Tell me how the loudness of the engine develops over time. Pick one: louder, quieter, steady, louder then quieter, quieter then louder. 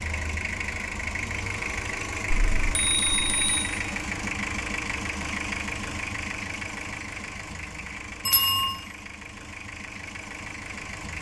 quieter.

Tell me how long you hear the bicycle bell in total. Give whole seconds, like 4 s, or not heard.
2 s.